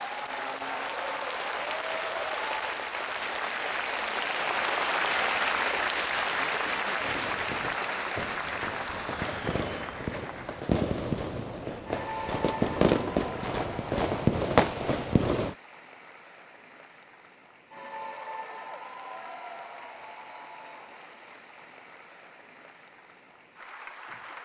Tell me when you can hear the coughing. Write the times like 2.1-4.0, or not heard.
not heard.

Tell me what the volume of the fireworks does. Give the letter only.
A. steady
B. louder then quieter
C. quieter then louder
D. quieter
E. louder
E.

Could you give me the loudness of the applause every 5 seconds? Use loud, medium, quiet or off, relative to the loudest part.
loud, loud, medium, quiet, quiet.